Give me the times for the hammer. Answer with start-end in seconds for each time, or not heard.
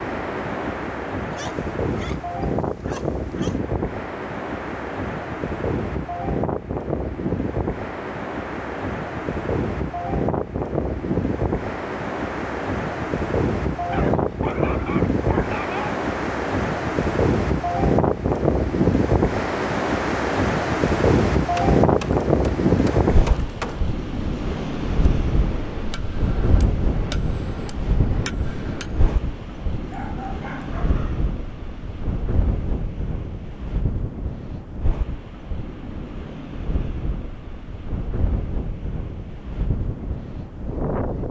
21.6-29.2.